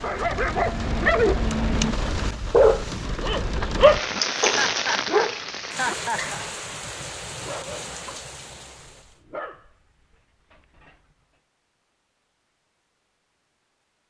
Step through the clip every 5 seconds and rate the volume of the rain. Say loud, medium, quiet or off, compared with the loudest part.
loud, medium, off.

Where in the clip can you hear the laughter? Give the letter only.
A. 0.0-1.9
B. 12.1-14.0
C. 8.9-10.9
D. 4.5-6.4
D.